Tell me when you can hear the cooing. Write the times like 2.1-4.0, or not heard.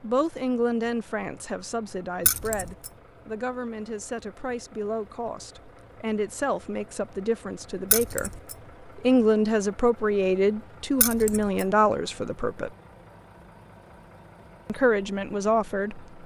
not heard.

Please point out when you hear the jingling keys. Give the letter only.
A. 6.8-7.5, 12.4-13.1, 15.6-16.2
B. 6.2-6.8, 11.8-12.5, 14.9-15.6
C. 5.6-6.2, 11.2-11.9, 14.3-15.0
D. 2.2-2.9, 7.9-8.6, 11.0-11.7
D.